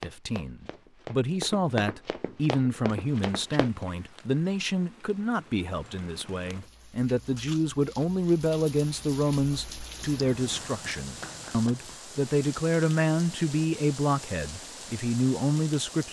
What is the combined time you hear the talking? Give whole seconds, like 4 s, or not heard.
16 s.